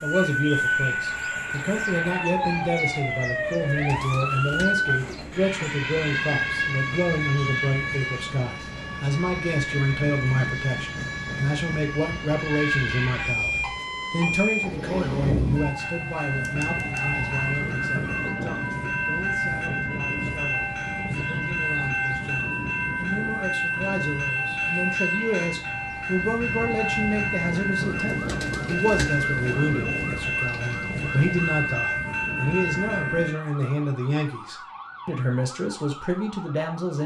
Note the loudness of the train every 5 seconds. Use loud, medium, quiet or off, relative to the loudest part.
quiet, quiet, medium, loud, loud, loud, loud, off.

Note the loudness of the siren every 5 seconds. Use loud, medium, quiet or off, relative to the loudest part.
loud, loud, loud, quiet, quiet, quiet, quiet, quiet.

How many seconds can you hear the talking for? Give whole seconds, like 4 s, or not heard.
37 s.